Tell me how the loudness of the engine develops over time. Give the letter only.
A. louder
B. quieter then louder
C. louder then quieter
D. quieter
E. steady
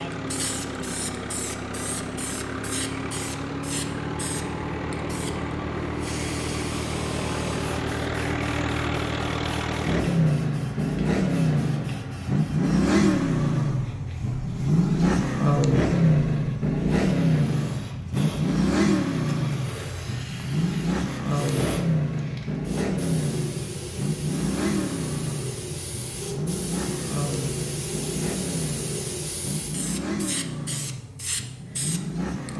C.